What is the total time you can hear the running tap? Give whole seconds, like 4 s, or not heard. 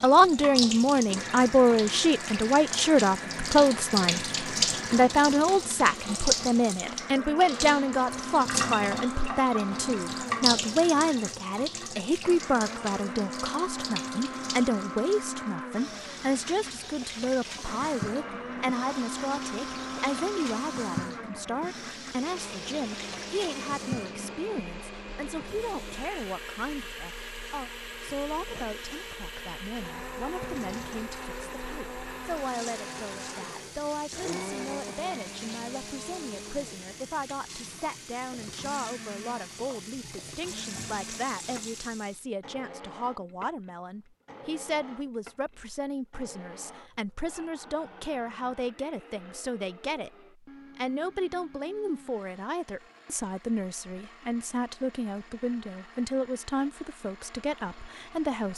42 s.